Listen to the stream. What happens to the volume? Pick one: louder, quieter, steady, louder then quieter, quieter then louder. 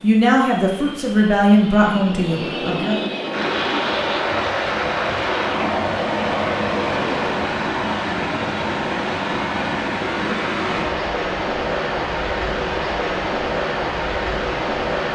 steady.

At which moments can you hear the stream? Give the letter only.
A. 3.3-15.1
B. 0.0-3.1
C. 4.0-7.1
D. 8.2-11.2
A.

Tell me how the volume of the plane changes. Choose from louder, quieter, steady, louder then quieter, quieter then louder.
louder.